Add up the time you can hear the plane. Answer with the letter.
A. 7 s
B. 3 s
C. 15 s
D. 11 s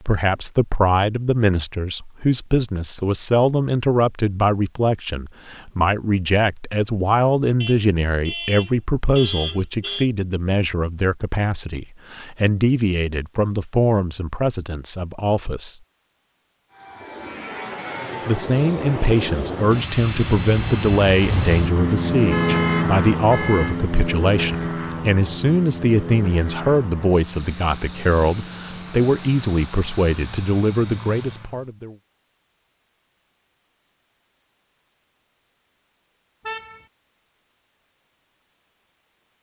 C.